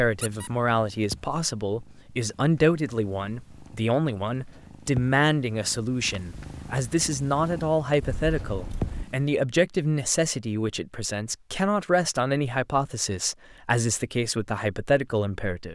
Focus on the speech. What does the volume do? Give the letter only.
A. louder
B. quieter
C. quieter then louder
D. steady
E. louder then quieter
D.